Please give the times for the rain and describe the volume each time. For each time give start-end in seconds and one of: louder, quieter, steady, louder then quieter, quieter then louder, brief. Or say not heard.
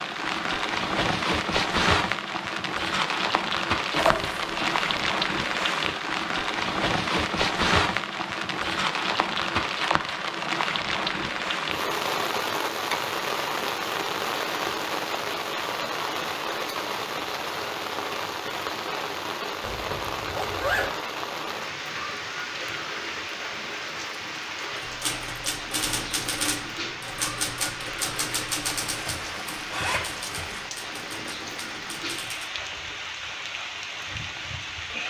0.0-35.0 quieter.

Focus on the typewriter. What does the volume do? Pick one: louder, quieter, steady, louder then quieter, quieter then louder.
quieter.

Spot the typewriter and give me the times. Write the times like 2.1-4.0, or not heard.
24.8-32.5.